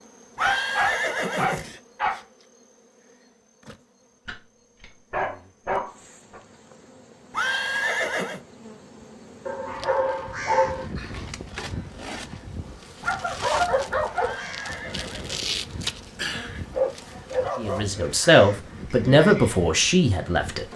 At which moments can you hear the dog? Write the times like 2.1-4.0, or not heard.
0.4-2.2, 4.2-6.4, 9.4-10.8, 13.0-14.7, 16.7-18.4.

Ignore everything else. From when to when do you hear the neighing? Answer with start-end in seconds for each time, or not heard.
0.3-1.7, 7.3-8.4, 14.2-15.5.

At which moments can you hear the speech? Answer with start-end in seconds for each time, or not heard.
17.6-20.6.